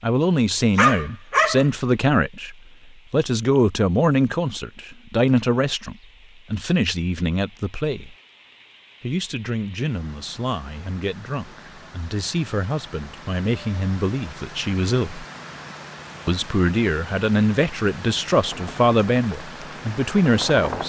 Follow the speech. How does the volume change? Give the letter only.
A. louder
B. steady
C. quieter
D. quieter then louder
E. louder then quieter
D.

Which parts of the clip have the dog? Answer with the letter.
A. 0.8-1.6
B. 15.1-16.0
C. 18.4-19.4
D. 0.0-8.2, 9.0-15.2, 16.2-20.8
A.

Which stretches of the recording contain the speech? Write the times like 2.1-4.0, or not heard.
0.0-8.2, 9.0-15.2, 16.2-20.8.